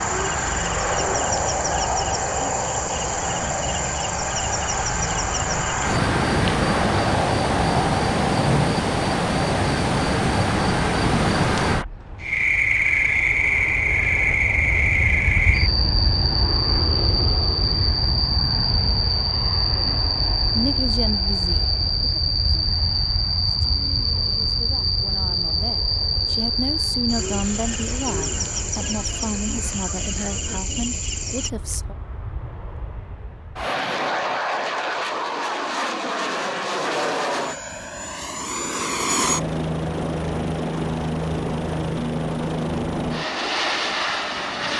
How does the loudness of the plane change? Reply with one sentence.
The volume of the plane goes down, then up.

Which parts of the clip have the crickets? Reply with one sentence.
The crickets can be heard from 0.0 to 31.5 s.